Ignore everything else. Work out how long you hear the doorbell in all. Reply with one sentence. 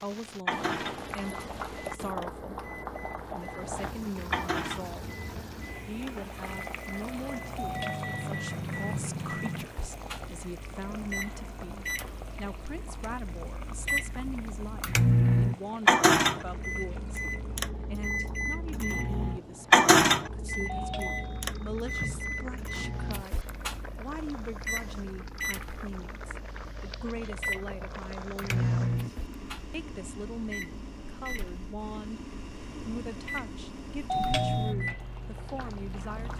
You can hear the doorbell for 4 seconds altogether.